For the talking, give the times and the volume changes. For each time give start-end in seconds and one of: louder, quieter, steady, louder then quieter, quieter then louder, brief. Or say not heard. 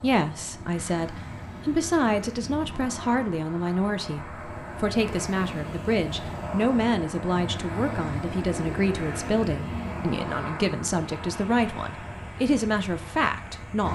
0.0-13.8 steady.